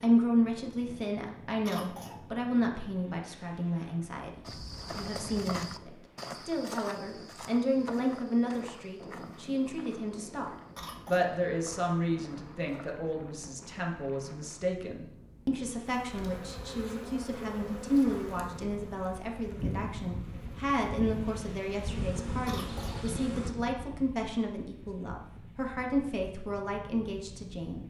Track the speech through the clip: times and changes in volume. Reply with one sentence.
The speech can be heard from 0.0 to 27.8 s, at a steady volume.